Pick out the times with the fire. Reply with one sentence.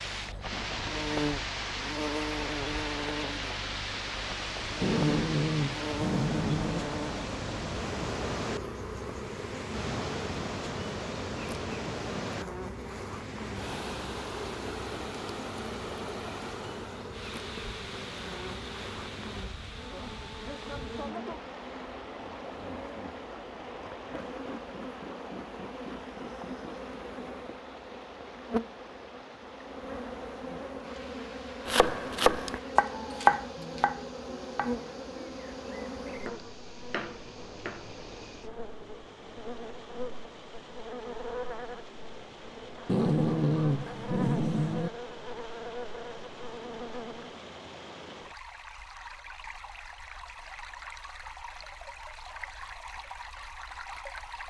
You can't hear the fire here.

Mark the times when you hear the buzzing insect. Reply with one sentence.
You can hear the buzzing insect from 0.0 to 47.5 s.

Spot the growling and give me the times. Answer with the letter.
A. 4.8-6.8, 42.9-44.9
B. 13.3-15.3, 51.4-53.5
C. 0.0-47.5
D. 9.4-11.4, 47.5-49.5
A.